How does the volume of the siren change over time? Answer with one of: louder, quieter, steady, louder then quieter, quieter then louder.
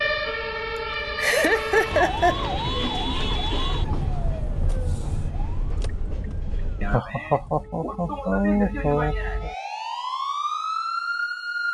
quieter then louder.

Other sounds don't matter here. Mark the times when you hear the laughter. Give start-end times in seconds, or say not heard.
0.8-2.4, 6.8-9.5.